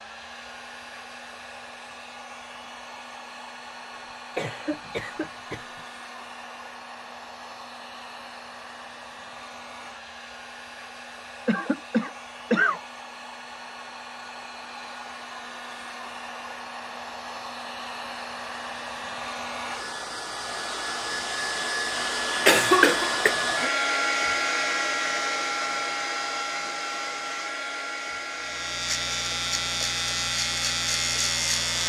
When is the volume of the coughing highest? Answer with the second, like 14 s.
23 s.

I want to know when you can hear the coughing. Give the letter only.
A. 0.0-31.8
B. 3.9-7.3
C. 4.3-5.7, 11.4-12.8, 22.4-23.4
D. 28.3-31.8
C.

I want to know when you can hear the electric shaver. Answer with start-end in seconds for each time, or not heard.
28.3-31.8.